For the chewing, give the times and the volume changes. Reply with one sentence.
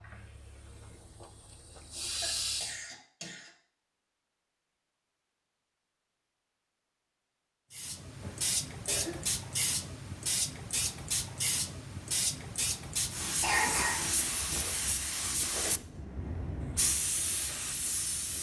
You can't hear the chewing here.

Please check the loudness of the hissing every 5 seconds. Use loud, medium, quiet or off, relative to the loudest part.
medium, loud, loud, loud.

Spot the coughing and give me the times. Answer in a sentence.
The coughing can be heard from 1.8 to 3.5 s, from 8.2 to 9.4 s and from 13.4 to 14.7 s.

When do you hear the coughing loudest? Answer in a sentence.
The volume of the coughing peaks at 14 seconds.